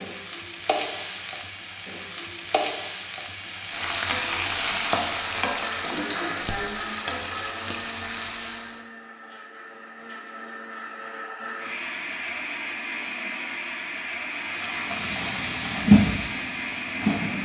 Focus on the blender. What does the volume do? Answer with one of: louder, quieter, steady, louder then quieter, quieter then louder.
quieter then louder.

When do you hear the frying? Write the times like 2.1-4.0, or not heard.
0.0-8.8, 14.3-17.4.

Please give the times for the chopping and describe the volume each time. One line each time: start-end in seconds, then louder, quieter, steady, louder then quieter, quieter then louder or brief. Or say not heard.
not heard.